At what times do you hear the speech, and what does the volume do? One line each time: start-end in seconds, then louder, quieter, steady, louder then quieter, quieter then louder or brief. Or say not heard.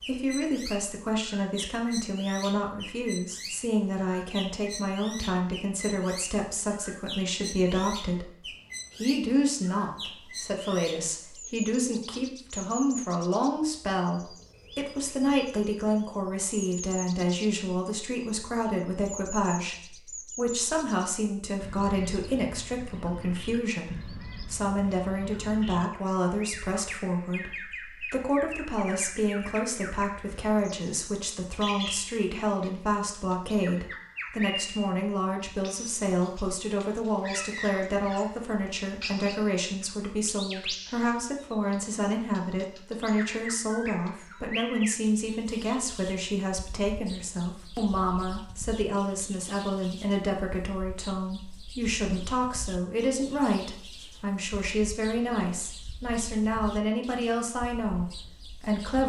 0.1-59.0 steady.